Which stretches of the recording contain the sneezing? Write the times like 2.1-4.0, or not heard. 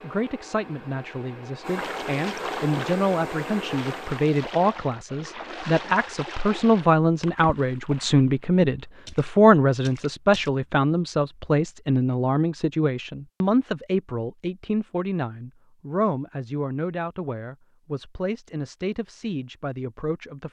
not heard.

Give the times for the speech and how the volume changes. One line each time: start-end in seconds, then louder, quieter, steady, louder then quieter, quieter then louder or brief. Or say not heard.
0.0-20.4 louder then quieter.